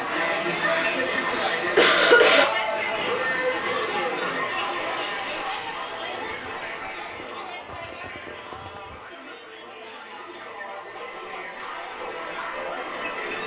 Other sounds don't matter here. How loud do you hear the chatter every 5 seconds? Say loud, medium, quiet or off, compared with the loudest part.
loud, medium, medium.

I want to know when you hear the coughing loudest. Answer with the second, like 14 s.
2 s.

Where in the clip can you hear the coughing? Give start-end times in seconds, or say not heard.
0.7-2.5.